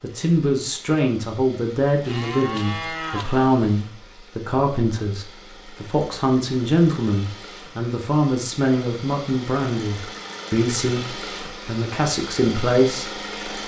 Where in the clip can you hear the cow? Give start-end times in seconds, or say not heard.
2.0-3.5.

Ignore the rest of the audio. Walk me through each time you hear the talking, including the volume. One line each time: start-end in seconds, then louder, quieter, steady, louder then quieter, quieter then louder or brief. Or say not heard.
0.0-13.6 steady.